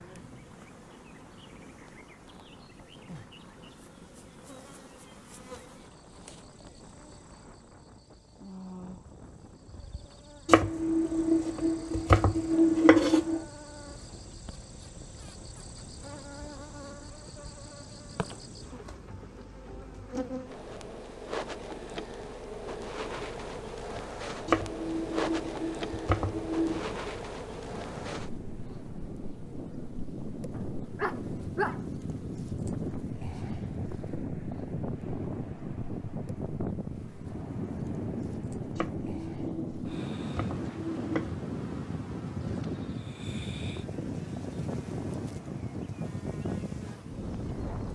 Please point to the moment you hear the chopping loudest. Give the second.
13 s.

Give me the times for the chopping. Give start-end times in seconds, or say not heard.
10.4-13.4, 24.4-26.8, 38.8-41.3.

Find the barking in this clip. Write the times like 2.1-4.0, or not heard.
30.5-31.8.